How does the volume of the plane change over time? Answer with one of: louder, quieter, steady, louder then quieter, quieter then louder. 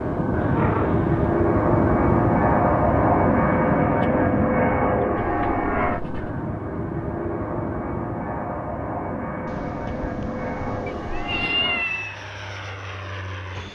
quieter.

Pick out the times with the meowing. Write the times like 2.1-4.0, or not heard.
0.4-1.4, 5.2-6.4, 10.8-12.2.